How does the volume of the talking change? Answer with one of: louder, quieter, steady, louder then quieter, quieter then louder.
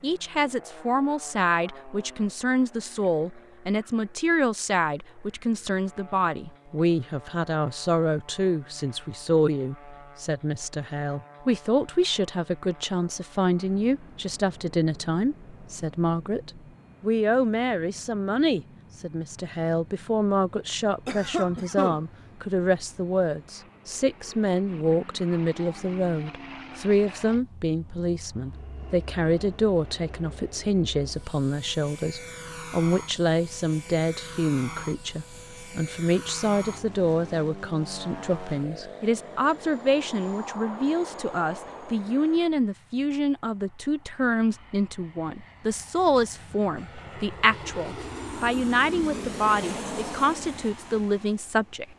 steady.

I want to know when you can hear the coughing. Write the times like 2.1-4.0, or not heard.
21.1-22.1.